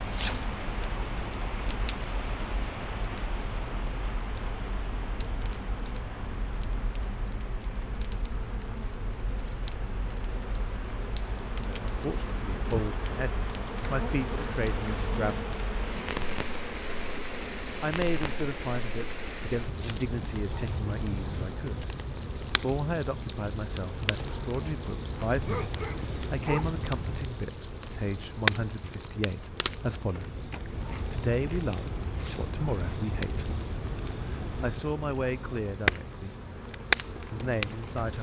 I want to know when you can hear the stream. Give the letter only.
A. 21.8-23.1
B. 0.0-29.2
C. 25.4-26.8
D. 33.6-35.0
B.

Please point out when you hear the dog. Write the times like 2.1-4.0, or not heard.
25.4-26.8.